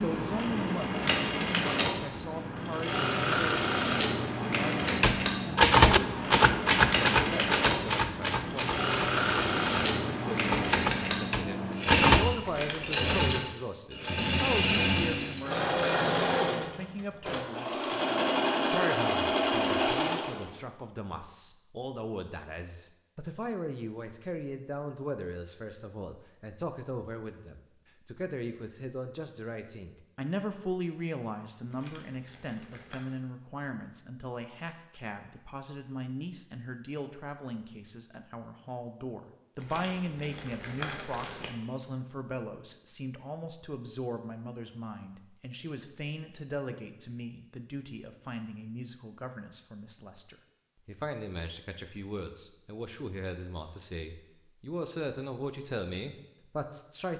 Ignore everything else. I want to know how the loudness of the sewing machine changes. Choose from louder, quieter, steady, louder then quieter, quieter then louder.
steady.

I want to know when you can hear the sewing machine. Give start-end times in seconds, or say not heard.
0.0-20.6.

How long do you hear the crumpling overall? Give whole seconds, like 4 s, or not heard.
4 s.